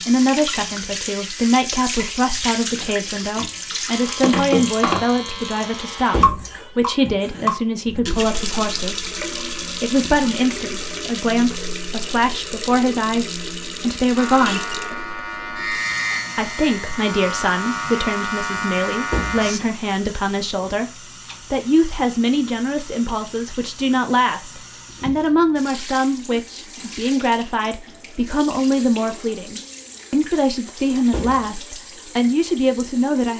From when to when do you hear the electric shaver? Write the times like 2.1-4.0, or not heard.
0.0-6.2, 14.2-19.6.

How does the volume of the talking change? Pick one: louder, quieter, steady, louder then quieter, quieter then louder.
steady.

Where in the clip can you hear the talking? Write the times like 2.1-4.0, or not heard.
0.1-9.1, 9.8-14.8, 16.4-20.9, 21.5-33.3.